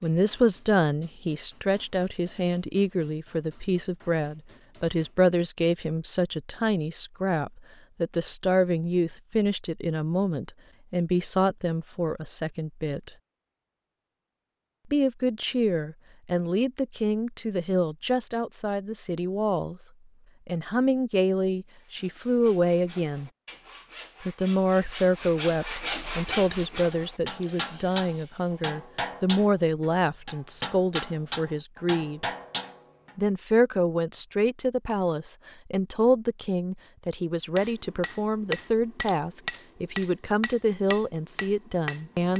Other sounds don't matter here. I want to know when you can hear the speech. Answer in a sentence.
The speech can be heard from 0.0 to 13.1 s, from 14.9 to 23.3 s, from 24.2 to 32.2 s and from 33.1 to 42.3 s.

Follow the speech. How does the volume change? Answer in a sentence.
The volume of the speech stays about the same.